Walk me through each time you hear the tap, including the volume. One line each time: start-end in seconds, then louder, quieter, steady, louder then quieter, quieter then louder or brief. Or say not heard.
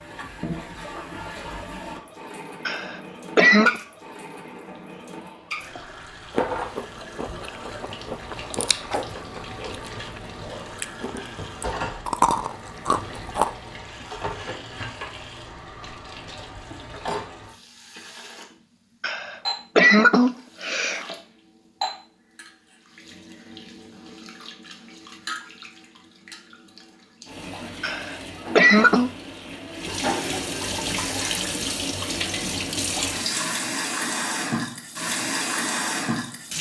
0.0-36.5 louder.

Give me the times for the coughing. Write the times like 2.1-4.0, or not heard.
2.6-3.8, 19.0-21.0, 27.8-29.1.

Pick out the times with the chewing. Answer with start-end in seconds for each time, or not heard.
6.3-13.7.